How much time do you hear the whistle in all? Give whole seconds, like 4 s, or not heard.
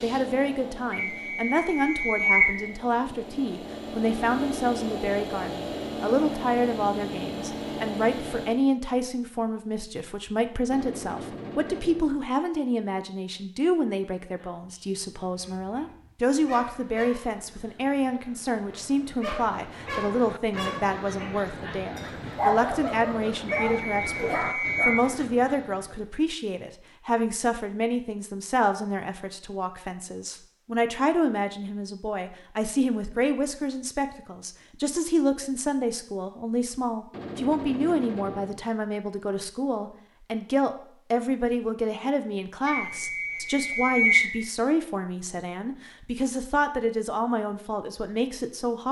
5 s.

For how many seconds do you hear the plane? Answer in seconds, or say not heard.
9 s.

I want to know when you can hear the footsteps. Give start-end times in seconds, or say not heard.
not heard.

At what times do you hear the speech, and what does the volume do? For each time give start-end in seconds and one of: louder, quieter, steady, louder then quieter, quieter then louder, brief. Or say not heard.
0.0-48.8 steady.